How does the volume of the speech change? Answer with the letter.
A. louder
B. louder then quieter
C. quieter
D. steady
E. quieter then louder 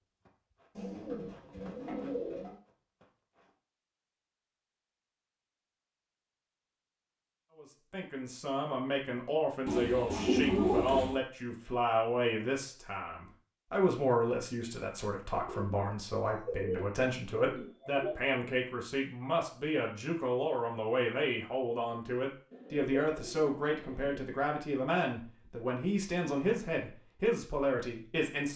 D.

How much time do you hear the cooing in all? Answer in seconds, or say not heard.
8 s.